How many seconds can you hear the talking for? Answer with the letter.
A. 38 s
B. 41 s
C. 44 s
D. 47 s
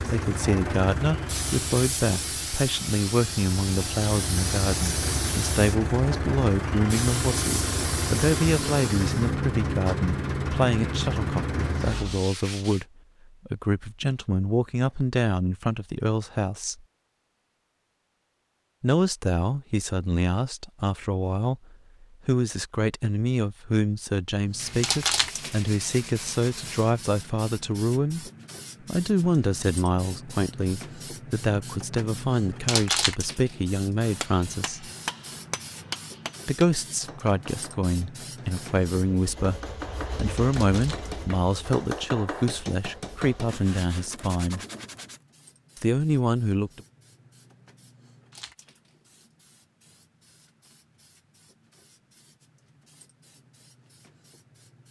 B.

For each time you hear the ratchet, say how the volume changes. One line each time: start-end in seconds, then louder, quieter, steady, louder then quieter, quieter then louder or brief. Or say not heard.
not heard.